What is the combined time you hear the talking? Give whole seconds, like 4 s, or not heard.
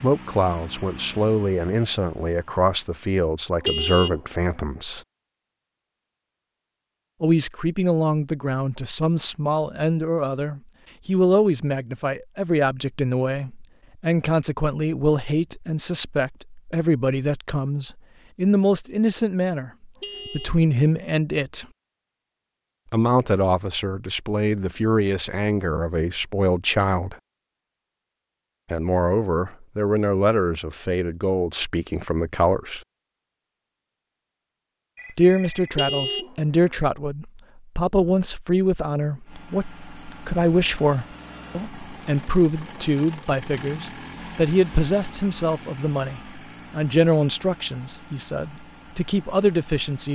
43 s.